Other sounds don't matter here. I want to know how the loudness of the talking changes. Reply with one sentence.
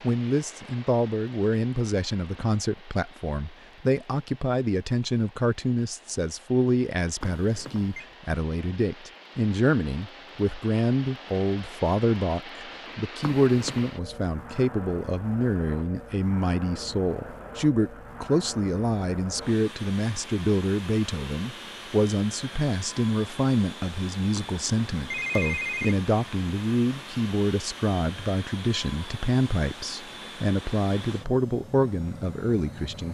The volume of the talking stays about the same.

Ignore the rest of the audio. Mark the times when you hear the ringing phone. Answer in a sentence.
The ringing phone can be heard from 7.2 to 8.1 s, from 13.2 to 13.9 s and from 24.4 to 25.9 s.